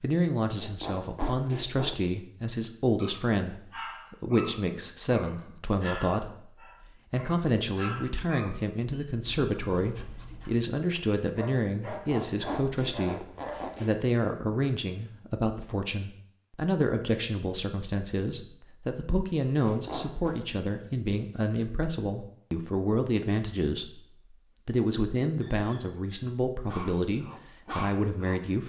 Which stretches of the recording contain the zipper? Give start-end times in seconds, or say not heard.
0.6-2.0, 11.8-13.9, 19.6-20.4.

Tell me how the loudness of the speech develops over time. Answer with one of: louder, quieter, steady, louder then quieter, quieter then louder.
steady.